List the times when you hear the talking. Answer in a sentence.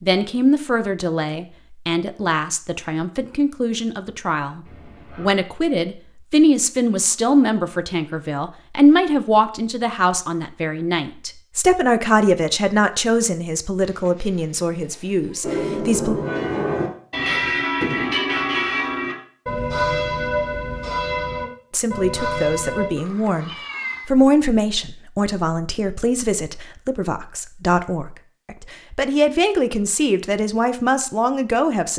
You can hear the talking from 0.0 to 16.1 s and from 21.7 to 31.9 s.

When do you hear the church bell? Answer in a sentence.
You can hear the church bell from 15.4 to 22.9 s.